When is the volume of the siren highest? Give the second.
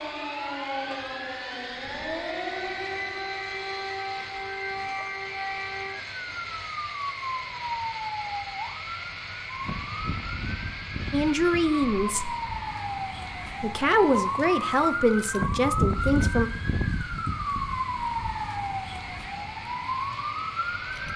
16 s.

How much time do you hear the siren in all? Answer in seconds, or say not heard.
21 s.